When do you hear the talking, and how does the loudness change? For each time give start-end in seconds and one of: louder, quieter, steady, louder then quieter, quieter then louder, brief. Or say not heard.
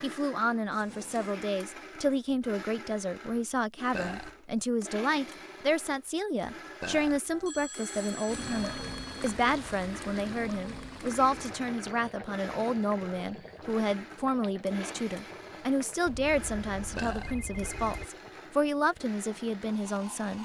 0.0-20.4 steady.